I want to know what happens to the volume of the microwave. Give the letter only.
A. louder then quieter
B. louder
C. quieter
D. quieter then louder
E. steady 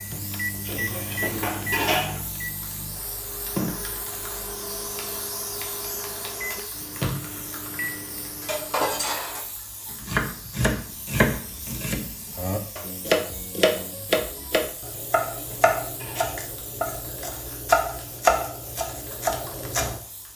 C.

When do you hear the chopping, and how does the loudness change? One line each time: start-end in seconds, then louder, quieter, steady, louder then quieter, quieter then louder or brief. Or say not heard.
9.9-20.0 steady.